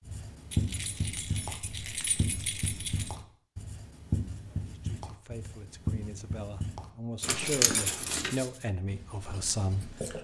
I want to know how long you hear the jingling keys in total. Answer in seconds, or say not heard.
4 s.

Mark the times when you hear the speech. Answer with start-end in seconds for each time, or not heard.
4.7-10.1.